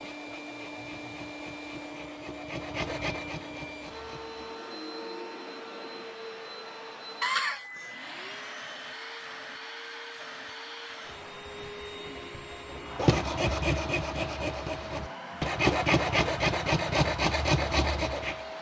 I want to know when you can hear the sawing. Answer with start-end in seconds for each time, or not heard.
0.0-4.5, 12.7-18.4.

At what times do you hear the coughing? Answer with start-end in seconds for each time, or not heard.
7.2-7.9.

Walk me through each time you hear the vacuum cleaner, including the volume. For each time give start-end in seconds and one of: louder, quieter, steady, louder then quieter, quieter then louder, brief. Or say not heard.
0.0-18.5 steady.